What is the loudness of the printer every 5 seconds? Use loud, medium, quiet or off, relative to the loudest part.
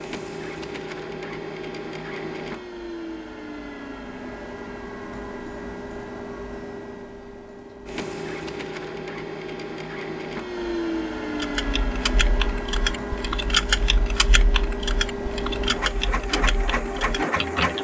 medium, medium, loud, loud.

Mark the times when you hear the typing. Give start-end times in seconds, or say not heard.
11.3-17.8.